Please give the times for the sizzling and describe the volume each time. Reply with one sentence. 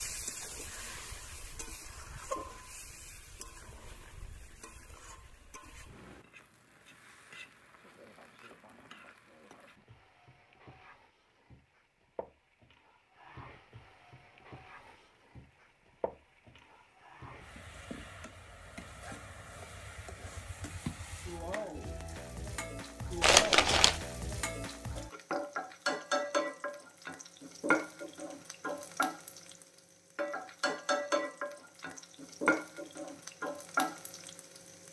The sizzling can be heard from 0.0 to 34.8 s, getting quieter then louder.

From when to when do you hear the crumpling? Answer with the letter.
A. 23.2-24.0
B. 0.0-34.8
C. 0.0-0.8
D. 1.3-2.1
A.